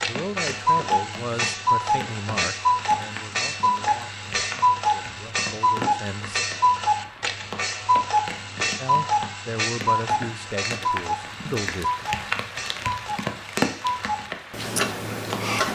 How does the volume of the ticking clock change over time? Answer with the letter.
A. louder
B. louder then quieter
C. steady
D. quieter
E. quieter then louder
D.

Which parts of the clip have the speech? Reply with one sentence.
You can hear the speech from 0.0 to 6.5 s and from 8.8 to 11.9 s.